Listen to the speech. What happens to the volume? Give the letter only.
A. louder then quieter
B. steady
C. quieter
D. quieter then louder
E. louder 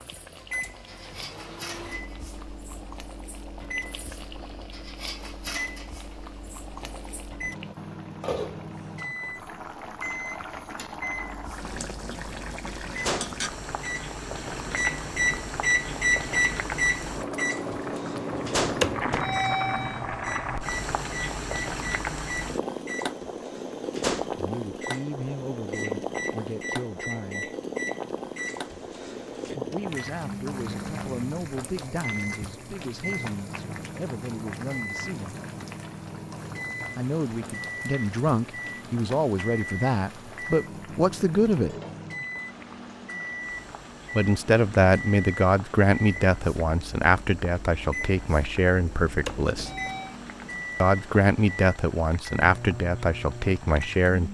E.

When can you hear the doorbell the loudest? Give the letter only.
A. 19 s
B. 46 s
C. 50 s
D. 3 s
A.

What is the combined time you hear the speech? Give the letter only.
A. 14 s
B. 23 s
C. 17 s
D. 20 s
B.